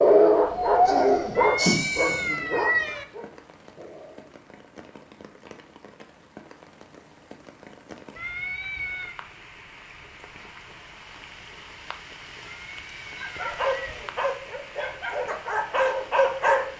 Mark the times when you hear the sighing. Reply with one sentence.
The sighing can be heard from 0.8 to 2.4 s.